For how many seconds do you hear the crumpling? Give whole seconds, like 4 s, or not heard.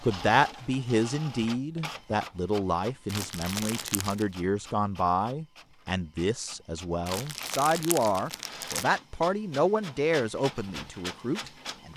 3 s.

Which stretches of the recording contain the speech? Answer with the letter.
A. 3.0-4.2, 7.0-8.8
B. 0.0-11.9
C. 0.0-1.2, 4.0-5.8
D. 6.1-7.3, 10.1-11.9
B.